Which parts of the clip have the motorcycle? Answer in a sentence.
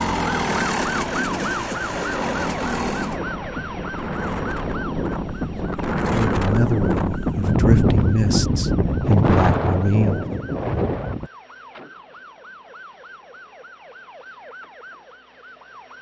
The motorcycle can be heard from 0.0 to 3.2 s.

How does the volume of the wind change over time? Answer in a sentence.
The volume of the wind goes up.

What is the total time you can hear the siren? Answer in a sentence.
You can hear the siren for 16 seconds altogether.